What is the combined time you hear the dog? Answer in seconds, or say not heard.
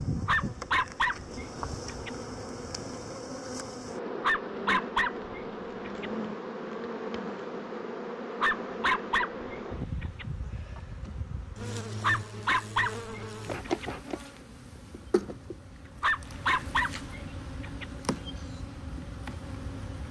9 s.